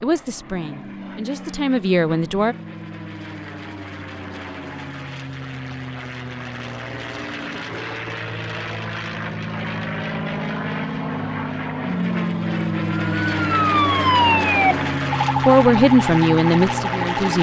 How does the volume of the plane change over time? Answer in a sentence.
The volume of the plane goes up.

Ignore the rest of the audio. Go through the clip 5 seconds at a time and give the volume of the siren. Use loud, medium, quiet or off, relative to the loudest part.
off, off, loud, medium.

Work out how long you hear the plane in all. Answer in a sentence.
The plane can be heard for 17 seconds in total.